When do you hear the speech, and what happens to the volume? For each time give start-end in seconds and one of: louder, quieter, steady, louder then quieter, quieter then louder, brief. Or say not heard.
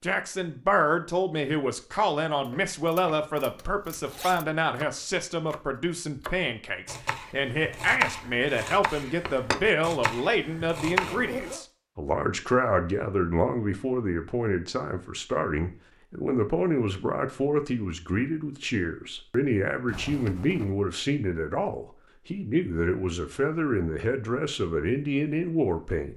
0.0-26.1 steady.